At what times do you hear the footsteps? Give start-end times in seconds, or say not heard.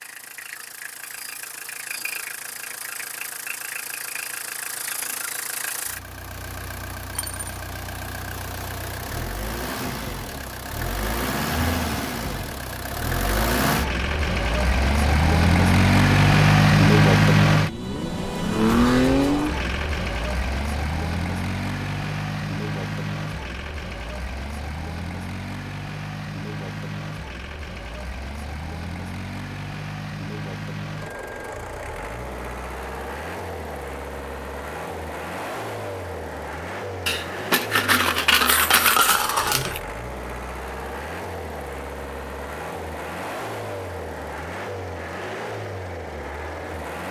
not heard.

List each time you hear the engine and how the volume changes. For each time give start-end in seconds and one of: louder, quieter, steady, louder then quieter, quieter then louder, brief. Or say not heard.
0.0-47.0 louder then quieter.